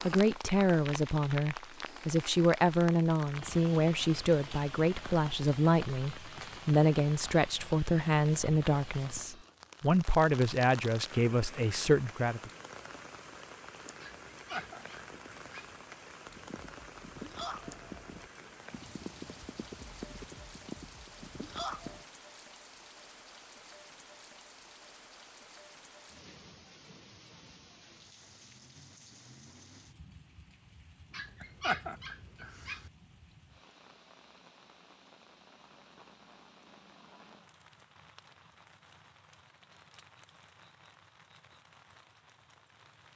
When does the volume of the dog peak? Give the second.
32 s.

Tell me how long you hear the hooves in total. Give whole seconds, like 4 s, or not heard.
6 s.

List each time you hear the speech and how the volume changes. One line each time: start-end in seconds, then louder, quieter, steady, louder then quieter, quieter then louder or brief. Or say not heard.
0.0-12.5 steady.